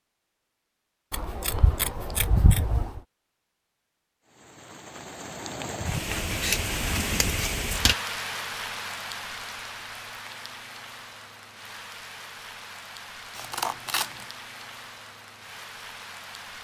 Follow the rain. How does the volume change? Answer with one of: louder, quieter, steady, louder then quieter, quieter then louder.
quieter.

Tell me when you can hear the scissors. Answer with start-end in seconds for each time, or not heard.
1.1-3.0, 6.0-8.0, 13.3-14.2.